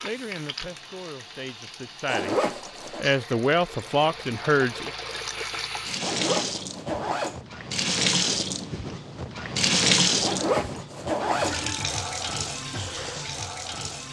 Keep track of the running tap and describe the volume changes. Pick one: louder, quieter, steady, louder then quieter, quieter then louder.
louder then quieter.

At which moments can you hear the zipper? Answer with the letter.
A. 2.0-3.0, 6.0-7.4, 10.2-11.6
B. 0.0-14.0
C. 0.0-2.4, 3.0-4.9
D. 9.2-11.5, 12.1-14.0
A.